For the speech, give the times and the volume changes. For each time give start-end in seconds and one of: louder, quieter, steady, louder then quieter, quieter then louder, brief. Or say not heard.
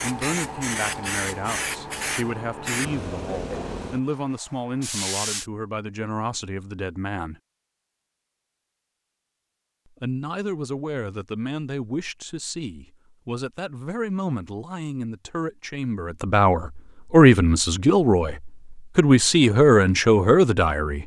0.0-7.4 steady
10.0-21.0 louder.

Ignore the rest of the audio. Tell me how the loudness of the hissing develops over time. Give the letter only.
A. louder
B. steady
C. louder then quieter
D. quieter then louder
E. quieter
E.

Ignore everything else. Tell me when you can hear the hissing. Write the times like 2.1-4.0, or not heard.
0.0-5.5.